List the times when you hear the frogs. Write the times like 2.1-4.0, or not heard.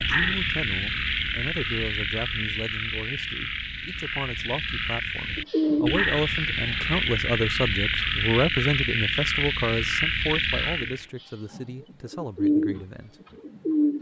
0.0-11.1.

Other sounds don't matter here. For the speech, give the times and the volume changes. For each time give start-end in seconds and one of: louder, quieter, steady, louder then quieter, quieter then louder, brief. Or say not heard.
0.0-13.2 louder then quieter.